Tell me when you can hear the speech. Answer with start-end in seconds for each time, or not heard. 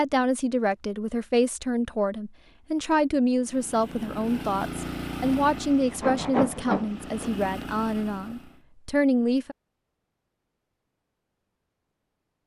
0.0-9.6.